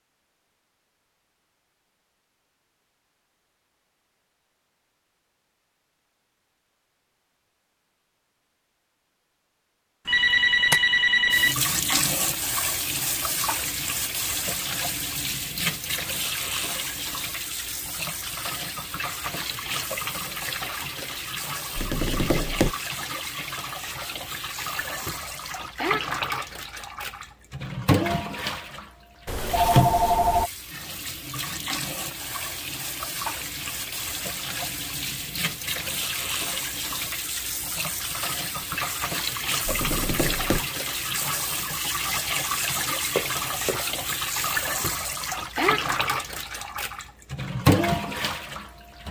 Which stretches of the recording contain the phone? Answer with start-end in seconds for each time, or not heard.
10.1-11.6, 29.2-30.5, 43.1-43.8.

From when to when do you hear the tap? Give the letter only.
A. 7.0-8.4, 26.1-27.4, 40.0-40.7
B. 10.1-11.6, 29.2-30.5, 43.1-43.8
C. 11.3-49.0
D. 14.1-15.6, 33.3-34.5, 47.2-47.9
C.